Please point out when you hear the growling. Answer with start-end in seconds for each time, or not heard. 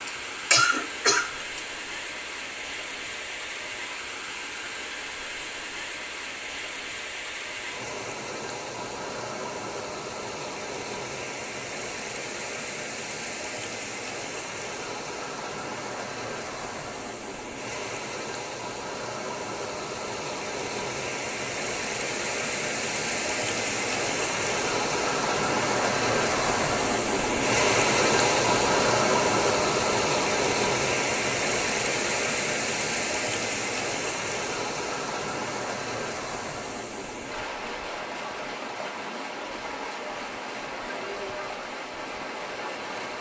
not heard.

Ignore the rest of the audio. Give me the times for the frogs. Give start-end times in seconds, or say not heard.
not heard.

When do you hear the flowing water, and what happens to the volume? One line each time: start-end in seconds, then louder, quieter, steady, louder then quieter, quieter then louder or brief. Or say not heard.
0.0-43.1 louder then quieter.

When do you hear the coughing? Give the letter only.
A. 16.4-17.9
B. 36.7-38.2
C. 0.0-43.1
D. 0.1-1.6
D.